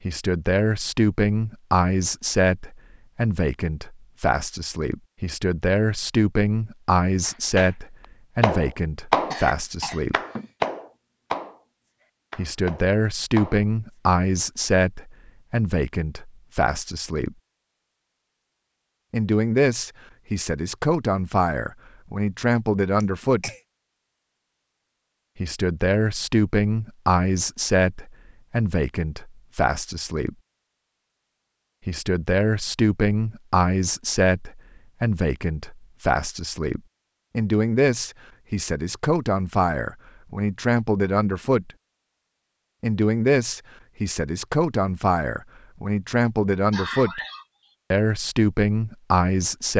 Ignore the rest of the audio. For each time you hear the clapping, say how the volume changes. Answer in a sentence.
You can hear the clapping briefly from 7.2 to 7.7 s; and from 8.4 to 13.9 s, getting quieter then louder.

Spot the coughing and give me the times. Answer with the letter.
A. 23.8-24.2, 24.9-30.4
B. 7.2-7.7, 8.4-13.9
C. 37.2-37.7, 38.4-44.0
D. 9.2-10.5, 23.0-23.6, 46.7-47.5
D.